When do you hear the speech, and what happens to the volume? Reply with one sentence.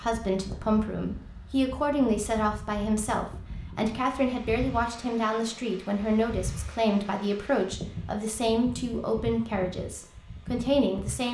You can hear the speech from 0.0 to 11.2 s, at a steady volume.